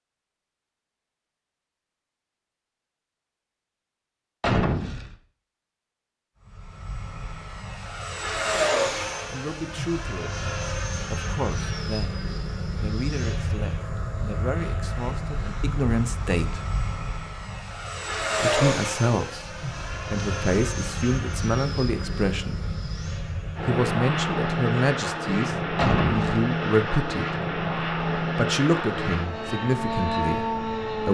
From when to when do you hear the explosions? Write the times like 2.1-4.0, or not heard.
4.4-5.2, 25.8-26.4.